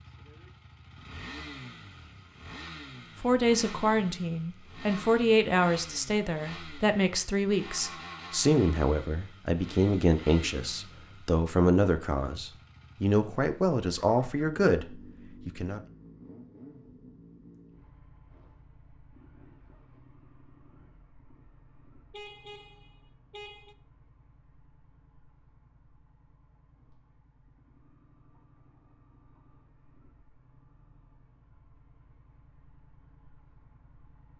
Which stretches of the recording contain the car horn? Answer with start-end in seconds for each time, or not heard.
22.1-23.8.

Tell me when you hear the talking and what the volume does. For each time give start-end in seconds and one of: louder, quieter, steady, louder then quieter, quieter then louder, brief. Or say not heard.
3.2-15.8 steady.